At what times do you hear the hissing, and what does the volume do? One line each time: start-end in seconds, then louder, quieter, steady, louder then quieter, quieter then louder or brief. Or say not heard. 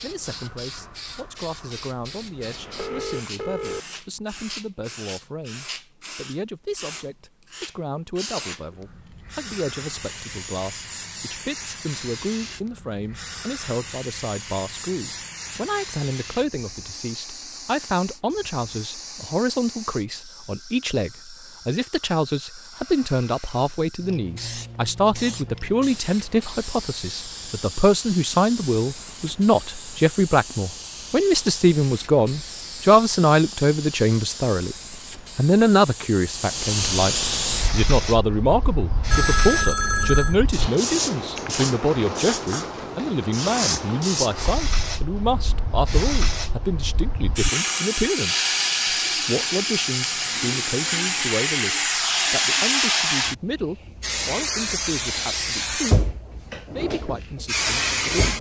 0.0-58.3 louder.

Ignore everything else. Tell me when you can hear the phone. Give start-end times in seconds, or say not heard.
2.8-3.9, 39.1-40.4.